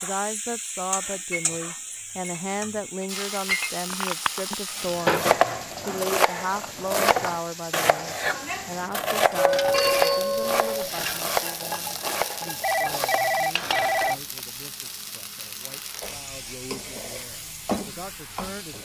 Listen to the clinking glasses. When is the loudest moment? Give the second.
10 s.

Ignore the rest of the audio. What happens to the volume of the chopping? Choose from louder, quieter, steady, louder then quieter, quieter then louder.
quieter.